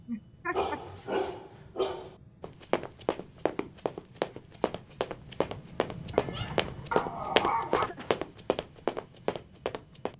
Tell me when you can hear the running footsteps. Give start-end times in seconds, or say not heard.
2.4-10.1.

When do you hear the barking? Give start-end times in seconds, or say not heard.
0.5-2.1, 6.1-7.9.